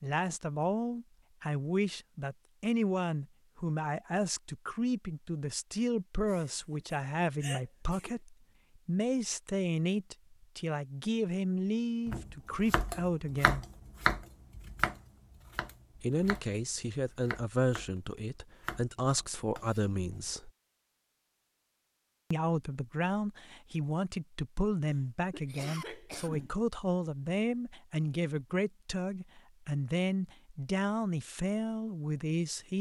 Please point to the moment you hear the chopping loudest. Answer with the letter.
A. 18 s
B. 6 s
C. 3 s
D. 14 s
D.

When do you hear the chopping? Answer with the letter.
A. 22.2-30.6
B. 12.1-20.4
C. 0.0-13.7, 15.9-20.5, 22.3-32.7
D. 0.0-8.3
B.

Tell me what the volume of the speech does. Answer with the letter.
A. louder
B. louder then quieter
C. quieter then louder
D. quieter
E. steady
E.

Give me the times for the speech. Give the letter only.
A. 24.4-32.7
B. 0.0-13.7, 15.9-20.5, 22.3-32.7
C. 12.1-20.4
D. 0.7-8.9
B.